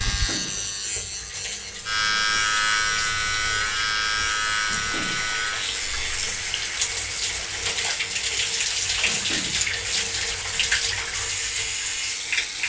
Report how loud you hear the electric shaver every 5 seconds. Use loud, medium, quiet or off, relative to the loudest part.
loud, medium, medium.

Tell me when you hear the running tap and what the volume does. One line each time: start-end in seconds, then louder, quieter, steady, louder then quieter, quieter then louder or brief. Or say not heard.
0.0-12.6 louder.